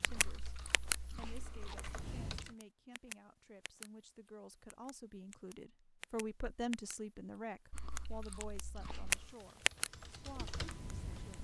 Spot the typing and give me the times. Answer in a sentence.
The typing can be heard from 0.0 to 2.5 s and from 8.8 to 11.3 s.